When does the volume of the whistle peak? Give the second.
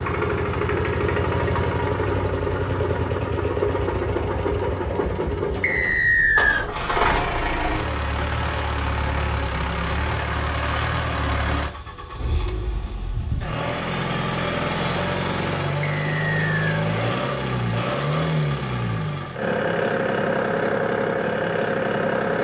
6 s.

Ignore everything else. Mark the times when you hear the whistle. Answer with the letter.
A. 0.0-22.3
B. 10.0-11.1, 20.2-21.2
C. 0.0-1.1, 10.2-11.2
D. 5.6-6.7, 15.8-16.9
D.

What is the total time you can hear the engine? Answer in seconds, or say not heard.
22 s.